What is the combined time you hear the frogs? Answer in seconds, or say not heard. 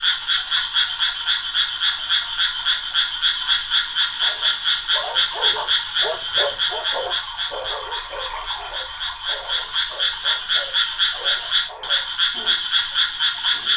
14 s.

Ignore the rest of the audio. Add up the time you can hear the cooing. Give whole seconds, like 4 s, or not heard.
not heard.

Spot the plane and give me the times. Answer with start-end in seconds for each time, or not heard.
not heard.